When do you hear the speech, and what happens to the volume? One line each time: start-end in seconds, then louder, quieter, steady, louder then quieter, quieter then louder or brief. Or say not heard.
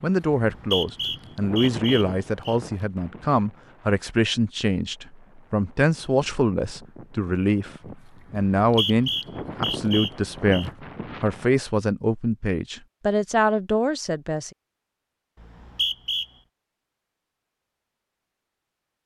0.0-14.5 steady.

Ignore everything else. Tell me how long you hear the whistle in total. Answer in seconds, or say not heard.
5 s.